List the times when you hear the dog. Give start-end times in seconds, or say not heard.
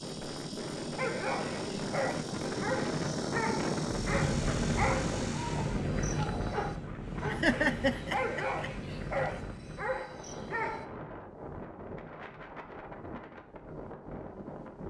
0.9-10.8.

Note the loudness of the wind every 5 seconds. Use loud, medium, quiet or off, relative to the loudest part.
loud, loud, medium.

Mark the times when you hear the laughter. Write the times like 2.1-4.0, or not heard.
7.3-8.7.